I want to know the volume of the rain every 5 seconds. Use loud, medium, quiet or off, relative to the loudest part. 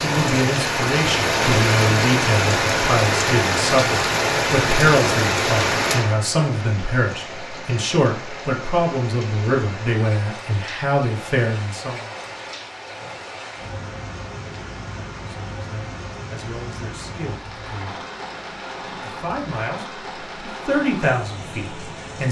loud, medium, quiet, quiet, quiet.